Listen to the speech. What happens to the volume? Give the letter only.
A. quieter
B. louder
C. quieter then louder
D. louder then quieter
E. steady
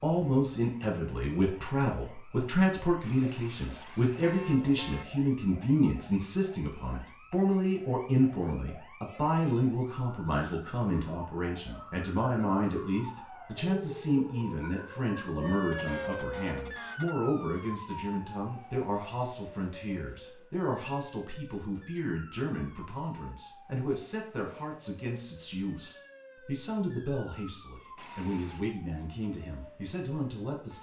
A.